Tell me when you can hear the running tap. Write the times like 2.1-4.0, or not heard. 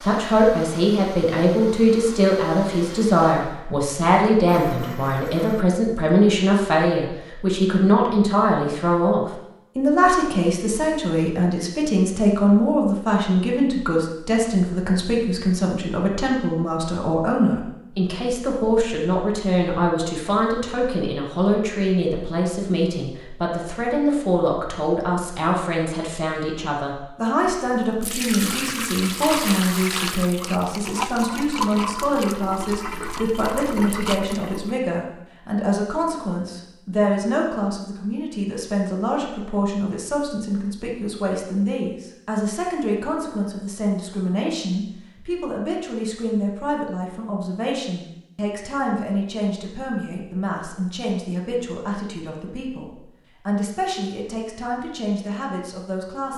27.4-34.8.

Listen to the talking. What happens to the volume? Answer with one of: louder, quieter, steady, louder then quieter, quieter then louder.
quieter.